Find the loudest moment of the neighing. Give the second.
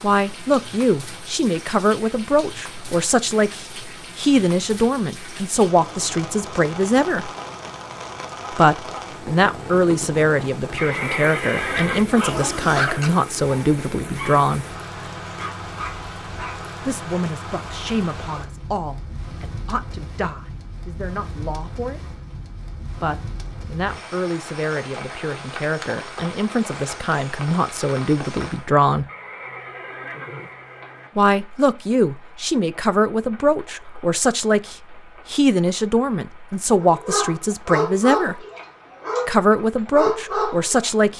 12 s.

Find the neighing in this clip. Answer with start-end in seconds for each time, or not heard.
10.8-12.1, 29.1-31.1.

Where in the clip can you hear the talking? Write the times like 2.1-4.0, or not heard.
0.0-7.3, 8.5-14.7, 16.9-22.1, 22.9-29.1, 31.1-38.5, 39.2-41.1.